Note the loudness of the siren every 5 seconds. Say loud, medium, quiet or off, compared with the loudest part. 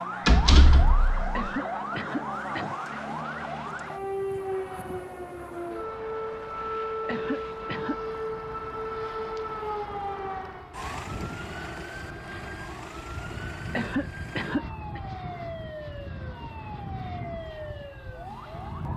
loud, loud, medium, medium.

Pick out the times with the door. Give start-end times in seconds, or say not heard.
0.2-1.5.